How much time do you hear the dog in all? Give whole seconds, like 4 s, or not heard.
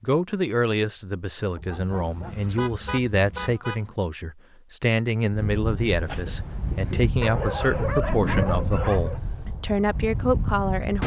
4 s.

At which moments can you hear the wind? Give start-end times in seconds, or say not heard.
5.3-11.0.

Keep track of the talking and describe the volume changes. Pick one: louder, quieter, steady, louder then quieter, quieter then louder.
steady.